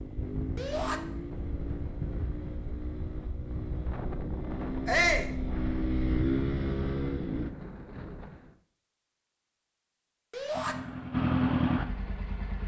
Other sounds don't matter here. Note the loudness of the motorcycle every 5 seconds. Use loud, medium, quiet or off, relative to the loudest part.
medium, loud, loud.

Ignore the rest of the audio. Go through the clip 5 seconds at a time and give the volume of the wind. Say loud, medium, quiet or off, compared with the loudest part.
loud, loud, off.